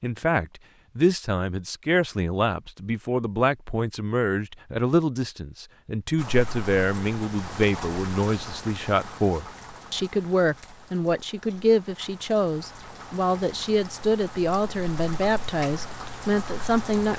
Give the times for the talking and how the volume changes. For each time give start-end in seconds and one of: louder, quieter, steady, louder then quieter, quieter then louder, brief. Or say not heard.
0.0-17.1 steady.